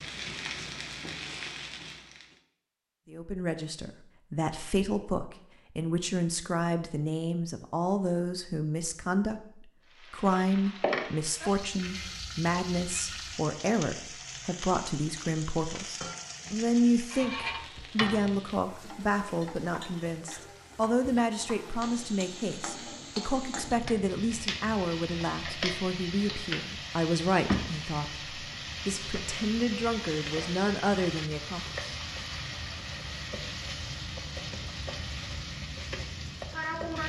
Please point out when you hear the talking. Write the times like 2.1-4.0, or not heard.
3.1-31.8.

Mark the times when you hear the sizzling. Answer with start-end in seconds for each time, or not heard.
0.0-2.4, 9.9-37.0.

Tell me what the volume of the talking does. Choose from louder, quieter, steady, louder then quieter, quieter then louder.
steady.